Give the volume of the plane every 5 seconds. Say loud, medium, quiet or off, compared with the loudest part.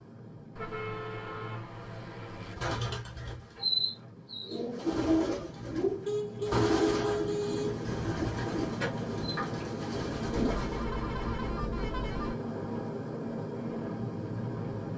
quiet, loud, loud.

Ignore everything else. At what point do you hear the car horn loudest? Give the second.
7 s.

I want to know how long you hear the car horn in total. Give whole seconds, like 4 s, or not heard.
6 s.